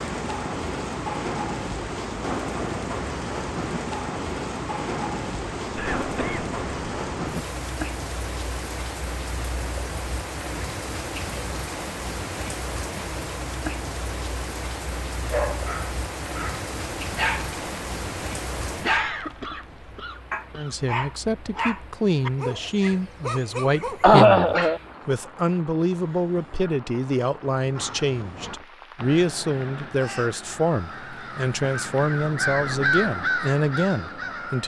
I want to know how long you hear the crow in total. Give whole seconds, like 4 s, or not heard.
7 s.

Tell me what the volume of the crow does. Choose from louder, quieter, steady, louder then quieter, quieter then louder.
louder.